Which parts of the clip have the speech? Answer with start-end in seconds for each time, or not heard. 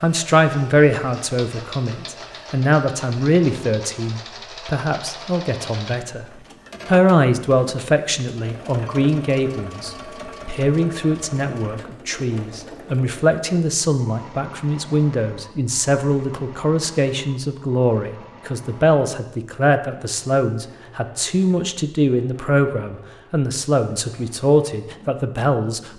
0.0-6.2, 6.8-25.9.